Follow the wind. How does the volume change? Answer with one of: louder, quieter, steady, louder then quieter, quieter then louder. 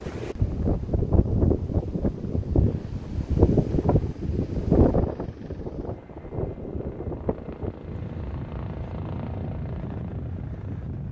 quieter.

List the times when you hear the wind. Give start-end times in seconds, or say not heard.
0.0-11.0.